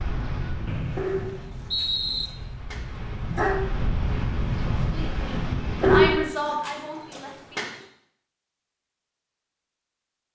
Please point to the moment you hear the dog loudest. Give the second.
6 s.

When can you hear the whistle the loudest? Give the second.
2 s.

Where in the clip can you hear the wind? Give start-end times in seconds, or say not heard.
0.0-6.3.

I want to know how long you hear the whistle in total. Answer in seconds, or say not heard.
2 s.